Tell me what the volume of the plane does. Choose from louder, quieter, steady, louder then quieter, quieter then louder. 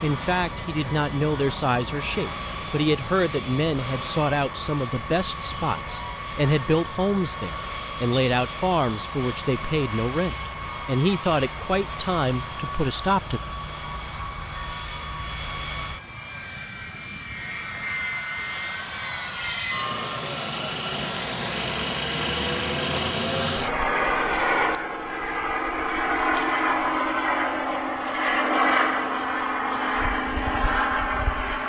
louder.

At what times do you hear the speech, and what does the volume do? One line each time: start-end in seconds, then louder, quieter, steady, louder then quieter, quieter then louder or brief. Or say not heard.
0.0-13.4 steady.